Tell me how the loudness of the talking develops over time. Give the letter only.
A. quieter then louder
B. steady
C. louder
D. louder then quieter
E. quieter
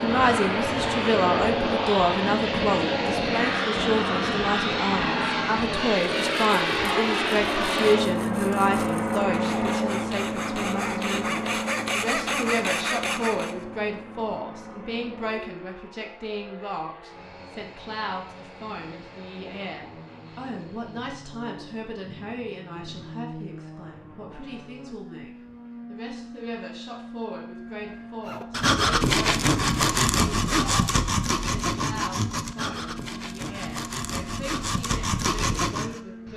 E.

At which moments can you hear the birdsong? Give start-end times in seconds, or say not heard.
not heard.